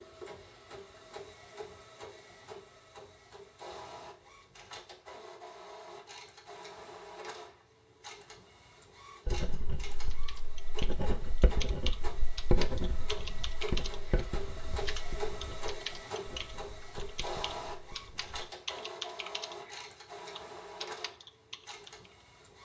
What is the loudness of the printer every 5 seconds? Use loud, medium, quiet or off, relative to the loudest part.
medium, medium, loud, loud, medium.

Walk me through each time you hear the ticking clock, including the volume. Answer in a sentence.
The ticking clock can't be heard in this clip.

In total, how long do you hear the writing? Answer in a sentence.
You can hear the writing for 9 seconds altogether.